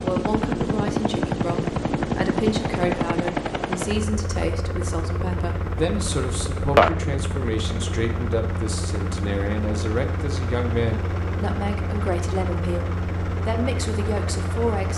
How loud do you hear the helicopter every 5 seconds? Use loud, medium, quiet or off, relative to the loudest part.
loud, loud, medium.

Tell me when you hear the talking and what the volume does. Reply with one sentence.
The talking can be heard from 0.0 to 14.9 s, at a steady volume.